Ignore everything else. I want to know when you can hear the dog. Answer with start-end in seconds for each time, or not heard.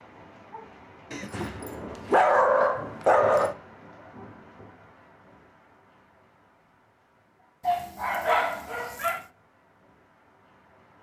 1.1-3.5, 7.7-9.2.